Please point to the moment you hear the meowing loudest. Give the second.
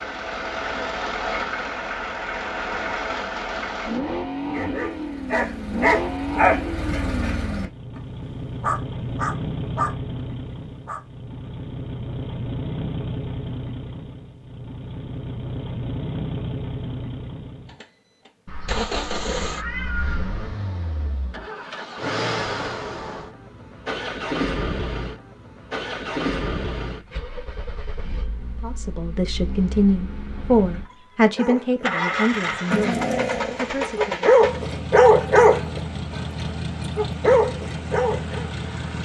20 s.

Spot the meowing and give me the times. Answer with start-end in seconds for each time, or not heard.
18.4-20.5.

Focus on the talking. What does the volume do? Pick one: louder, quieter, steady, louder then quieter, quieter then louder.
quieter.